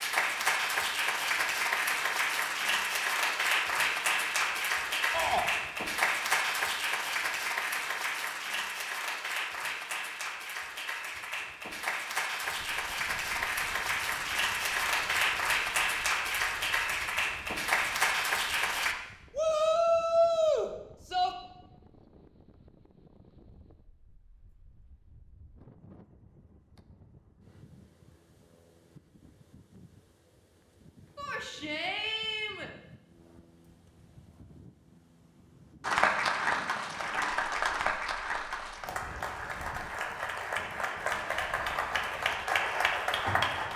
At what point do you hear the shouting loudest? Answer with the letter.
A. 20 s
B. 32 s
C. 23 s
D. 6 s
A.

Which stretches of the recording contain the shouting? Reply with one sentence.
You can hear the shouting from 5.1 to 5.5 s, from 19.4 to 21.3 s and from 31.1 to 32.7 s.